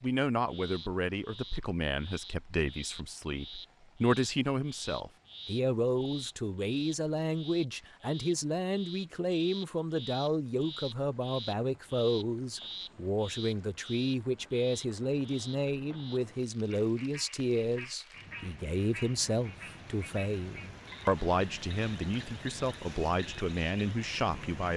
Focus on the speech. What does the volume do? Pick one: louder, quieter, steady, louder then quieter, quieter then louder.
steady.